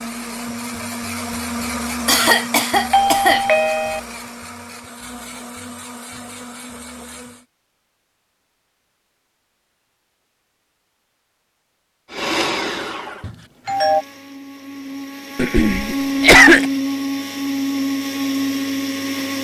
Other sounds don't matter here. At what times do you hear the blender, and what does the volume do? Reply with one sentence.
The blender can be heard from 0.0 to 7.5 s, getting quieter; and from 12.1 to 19.3 s, getting quieter then louder.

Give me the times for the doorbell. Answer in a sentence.
The doorbell can be heard from 2.9 to 4.0 s and from 13.2 to 14.1 s.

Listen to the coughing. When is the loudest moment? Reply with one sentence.
The loudest moment of the coughing is at 16 seconds.